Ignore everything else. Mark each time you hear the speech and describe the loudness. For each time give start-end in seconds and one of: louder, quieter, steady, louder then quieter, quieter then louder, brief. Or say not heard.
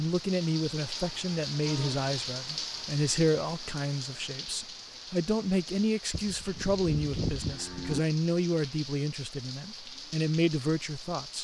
0.0-11.3 steady.